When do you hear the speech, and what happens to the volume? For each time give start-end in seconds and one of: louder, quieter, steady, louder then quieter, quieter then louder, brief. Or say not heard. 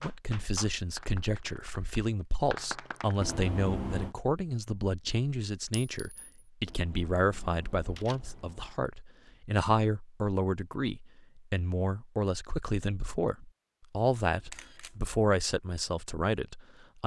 0.0-17.0 steady.